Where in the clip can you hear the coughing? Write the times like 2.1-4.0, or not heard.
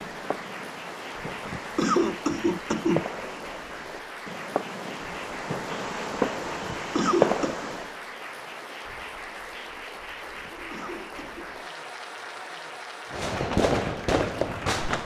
1.4-3.0, 6.6-7.5, 10.3-11.5.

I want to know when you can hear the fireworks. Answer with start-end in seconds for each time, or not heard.
0.0-8.0, 13.1-14.9.